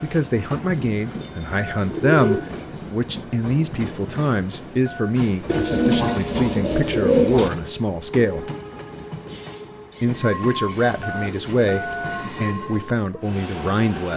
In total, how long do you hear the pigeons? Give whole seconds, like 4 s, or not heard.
5 s.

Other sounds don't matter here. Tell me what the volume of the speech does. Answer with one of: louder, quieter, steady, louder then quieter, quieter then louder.
steady.